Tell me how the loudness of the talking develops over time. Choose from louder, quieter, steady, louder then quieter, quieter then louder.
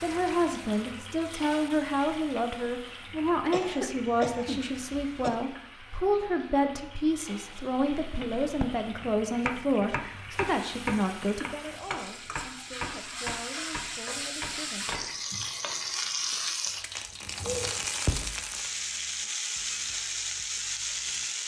quieter.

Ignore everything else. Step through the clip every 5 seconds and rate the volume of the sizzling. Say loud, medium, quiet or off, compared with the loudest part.
medium, quiet, medium, loud, loud.